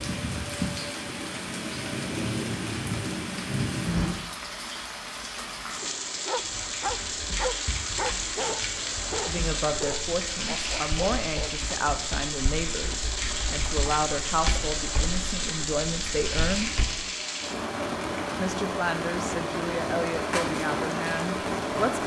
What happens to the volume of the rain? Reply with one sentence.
The volume of the rain stays about the same.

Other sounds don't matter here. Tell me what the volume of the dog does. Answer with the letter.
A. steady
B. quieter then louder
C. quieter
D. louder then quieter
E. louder
C.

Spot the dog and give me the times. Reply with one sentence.
You can hear the dog from 5.8 to 11.5 s.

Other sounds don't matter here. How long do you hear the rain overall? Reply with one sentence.
The rain can be heard for 22 seconds in total.